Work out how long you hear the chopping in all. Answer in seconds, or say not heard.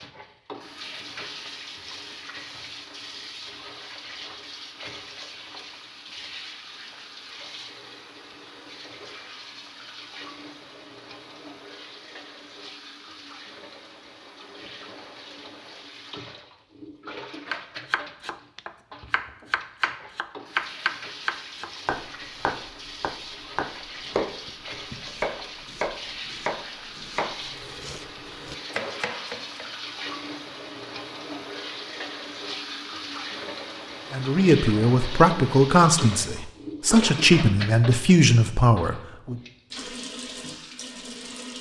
12 s.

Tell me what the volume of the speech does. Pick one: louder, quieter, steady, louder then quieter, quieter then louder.
steady.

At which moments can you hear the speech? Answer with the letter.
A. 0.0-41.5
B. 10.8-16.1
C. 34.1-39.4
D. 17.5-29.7
C.